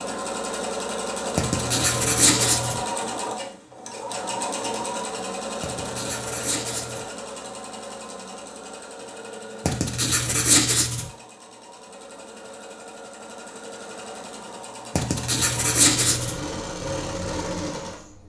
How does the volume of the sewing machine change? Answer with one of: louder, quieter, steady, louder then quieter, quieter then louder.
quieter then louder.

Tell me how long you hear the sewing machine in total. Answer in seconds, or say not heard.
18 s.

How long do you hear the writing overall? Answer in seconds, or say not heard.
6 s.